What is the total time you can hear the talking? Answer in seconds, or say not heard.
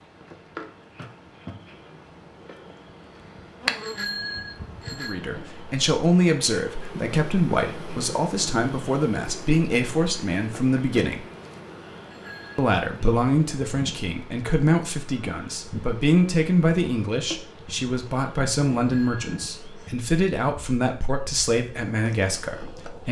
17 s.